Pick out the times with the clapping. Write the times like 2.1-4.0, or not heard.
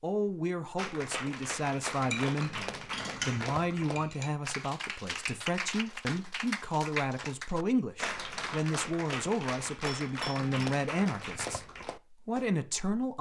0.8-12.4.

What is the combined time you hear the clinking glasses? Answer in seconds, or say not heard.
3 s.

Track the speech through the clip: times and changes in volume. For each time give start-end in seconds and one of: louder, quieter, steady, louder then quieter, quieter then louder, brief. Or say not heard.
0.0-13.1 steady.